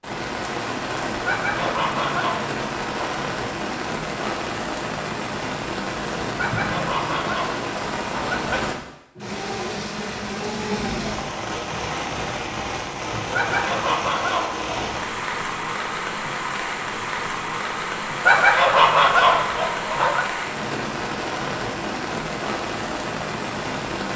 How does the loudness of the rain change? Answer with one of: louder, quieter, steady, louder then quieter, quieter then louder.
steady.